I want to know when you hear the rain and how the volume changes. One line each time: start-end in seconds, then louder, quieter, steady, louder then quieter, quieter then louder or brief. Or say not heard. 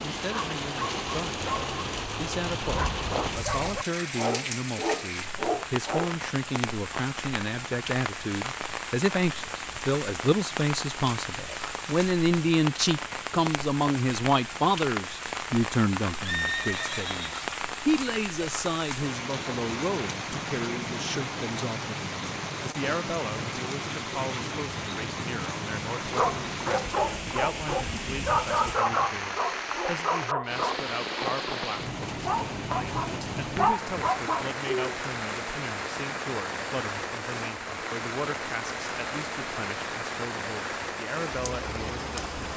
0.0-42.5 steady.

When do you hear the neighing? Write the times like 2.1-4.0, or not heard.
16.2-17.5.